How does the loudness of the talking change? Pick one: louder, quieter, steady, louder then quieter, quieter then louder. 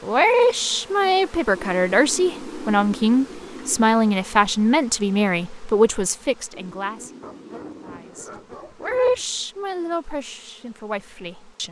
quieter.